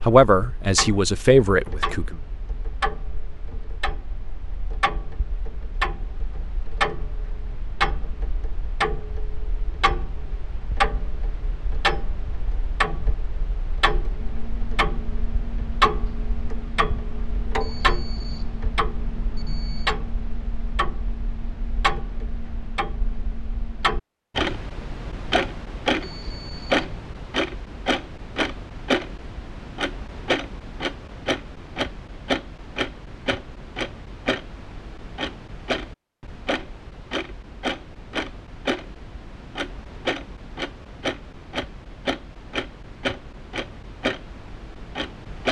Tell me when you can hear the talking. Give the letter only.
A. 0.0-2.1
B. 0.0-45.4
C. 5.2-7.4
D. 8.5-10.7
A.